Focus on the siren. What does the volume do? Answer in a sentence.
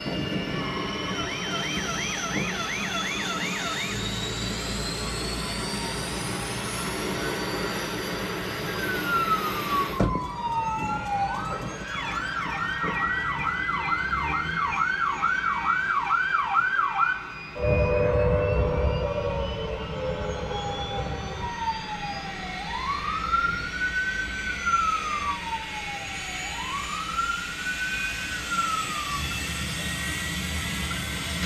The volume of the siren goes up, then down.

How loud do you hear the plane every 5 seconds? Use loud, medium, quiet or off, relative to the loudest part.
loud, loud, medium, medium, medium, loud, loud.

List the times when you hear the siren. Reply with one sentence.
You can hear the siren from 0.2 to 31.4 s.